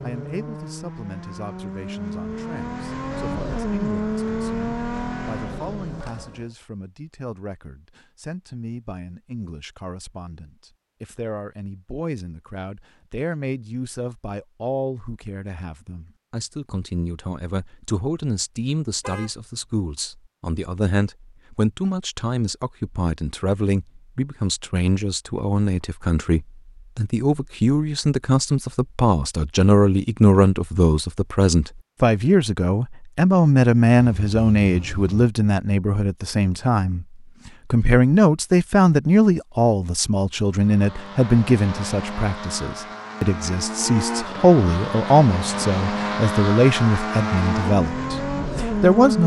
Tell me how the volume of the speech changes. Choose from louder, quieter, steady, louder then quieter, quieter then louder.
louder.